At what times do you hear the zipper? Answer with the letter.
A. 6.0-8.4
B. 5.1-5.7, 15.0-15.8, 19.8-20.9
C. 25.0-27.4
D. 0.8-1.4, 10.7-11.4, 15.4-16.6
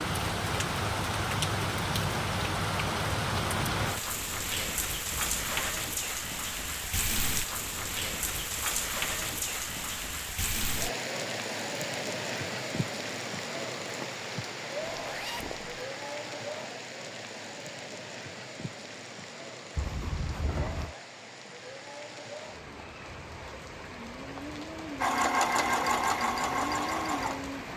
B.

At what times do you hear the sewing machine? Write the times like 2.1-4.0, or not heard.
25.0-27.4.